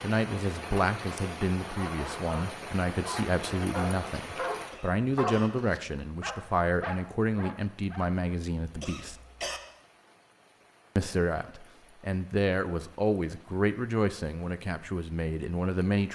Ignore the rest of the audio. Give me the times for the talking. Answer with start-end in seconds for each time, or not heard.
0.0-9.2, 10.9-16.0.